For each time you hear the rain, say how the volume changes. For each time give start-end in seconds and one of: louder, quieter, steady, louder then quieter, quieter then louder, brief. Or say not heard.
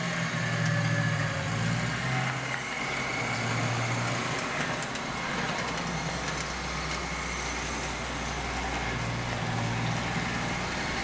2.8-10.9 steady.